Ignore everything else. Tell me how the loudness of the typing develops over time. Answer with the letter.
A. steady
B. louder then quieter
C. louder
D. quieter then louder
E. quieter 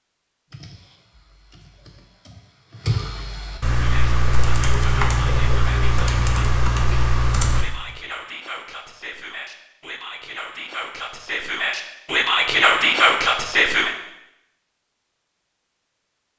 C.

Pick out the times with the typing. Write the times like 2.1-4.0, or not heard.
0.5-8.0.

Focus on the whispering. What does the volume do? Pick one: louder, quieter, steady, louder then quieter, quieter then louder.
louder.